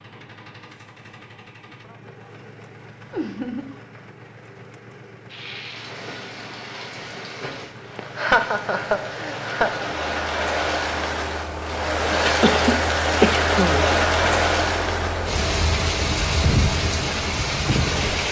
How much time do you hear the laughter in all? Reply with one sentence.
The laughter can be heard for 4 seconds in total.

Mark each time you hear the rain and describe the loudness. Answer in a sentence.
The rain can be heard from 5.2 to 18.2 s, getting louder.